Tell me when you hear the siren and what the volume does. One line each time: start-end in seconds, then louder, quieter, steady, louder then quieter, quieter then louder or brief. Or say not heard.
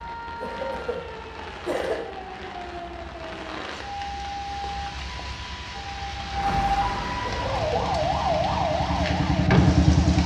0.0-10.2 louder.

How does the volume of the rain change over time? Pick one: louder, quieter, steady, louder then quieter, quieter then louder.
louder.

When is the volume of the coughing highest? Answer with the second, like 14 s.
2 s.